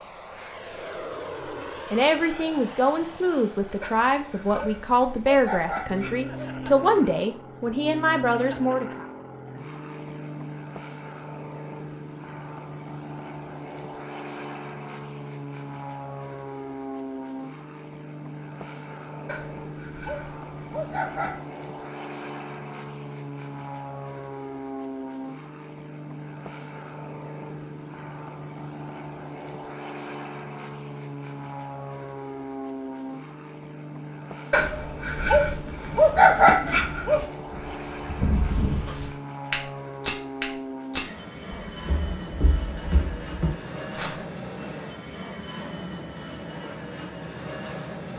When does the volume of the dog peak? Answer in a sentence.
The loudest moment of the dog is at 36 seconds.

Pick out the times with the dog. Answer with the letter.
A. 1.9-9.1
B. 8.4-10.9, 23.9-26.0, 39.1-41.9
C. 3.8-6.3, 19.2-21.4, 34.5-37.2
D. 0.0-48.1
C.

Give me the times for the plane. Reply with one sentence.
The plane can be heard from 0.0 to 48.1 s.